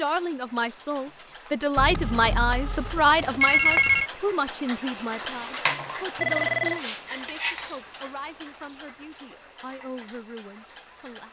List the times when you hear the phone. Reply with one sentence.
You can hear the phone from 1.8 to 4.1 s and from 6.2 to 6.8 s.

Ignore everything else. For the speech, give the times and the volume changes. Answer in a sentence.
You can hear the speech from 0.0 to 11.2 s, getting quieter.